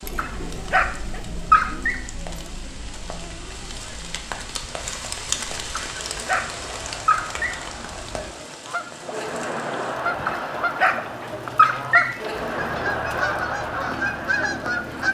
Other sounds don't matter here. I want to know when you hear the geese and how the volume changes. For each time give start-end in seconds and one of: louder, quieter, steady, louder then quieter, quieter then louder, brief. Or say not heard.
3.2-15.0 louder.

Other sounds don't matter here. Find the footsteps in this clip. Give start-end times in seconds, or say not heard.
not heard.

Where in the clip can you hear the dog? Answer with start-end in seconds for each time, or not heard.
0.1-1.9, 5.7-7.5, 10.2-12.2.